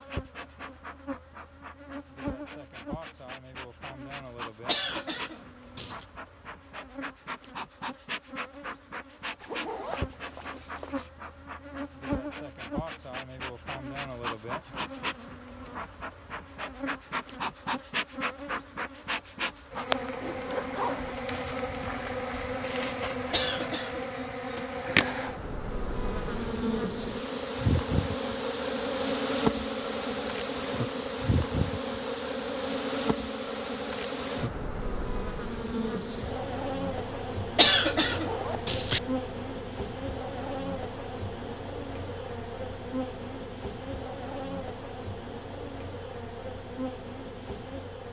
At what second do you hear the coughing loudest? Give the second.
38 s.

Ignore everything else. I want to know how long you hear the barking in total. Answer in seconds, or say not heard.
not heard.